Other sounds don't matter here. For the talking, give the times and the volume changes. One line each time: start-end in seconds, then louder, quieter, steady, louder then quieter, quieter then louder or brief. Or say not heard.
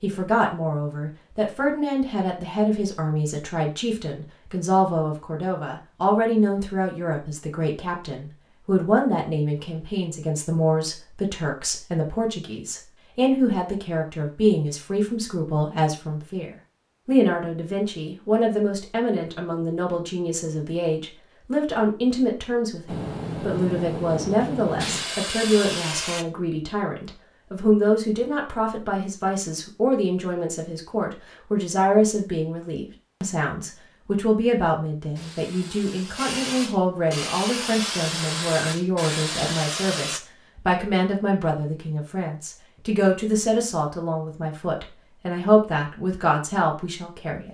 0.0-47.5 steady.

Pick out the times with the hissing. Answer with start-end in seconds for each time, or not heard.
22.9-26.2, 35.1-40.2.